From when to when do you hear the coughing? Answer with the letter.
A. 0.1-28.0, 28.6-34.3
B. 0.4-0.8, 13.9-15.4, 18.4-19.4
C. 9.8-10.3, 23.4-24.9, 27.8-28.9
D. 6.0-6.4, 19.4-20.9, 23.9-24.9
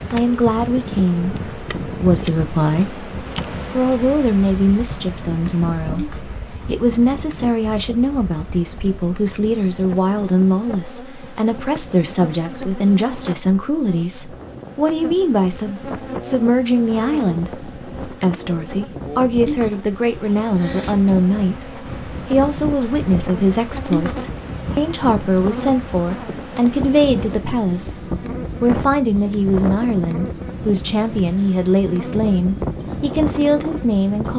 D.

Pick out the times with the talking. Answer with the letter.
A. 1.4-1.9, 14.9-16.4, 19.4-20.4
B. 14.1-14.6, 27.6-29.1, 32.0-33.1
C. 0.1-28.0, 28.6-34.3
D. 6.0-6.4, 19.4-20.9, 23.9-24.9
C.